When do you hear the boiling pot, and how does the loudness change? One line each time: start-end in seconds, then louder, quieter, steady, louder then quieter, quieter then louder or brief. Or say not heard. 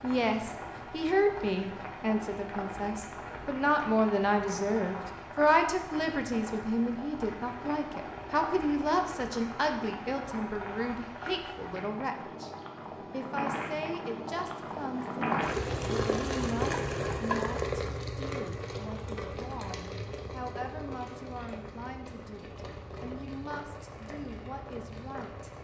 0.0-25.5 louder then quieter.